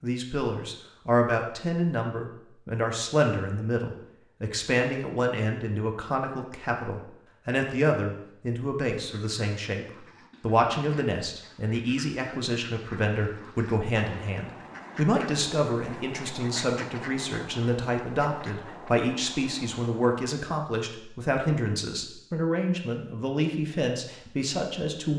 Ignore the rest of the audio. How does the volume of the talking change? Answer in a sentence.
The volume of the talking stays about the same.